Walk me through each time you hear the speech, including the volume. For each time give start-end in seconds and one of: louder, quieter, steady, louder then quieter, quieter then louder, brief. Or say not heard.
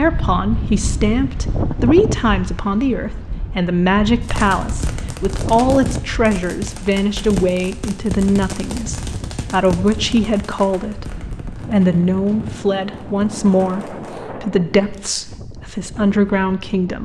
0.0-17.0 steady.